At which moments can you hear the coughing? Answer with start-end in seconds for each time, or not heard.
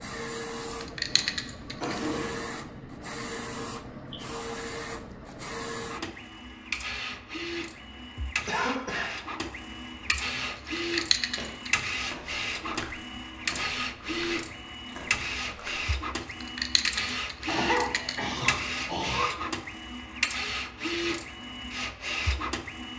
1.0-2.5, 8.4-9.4, 17.4-19.3.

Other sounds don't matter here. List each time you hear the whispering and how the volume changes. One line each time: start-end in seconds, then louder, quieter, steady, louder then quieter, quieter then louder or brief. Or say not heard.
not heard.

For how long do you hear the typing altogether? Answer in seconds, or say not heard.
4 s.